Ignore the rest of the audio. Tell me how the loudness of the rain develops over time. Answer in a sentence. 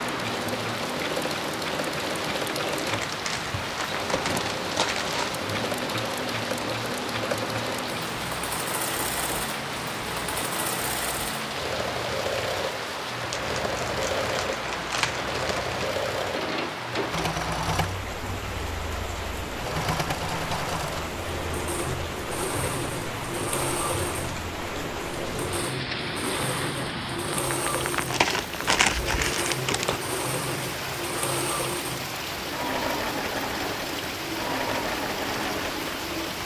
The loudness of the rain stays about the same.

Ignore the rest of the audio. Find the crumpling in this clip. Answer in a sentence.
The crumpling can be heard from 2.8 to 5.3 s, from 13.3 to 15.8 s and from 27.9 to 30.0 s.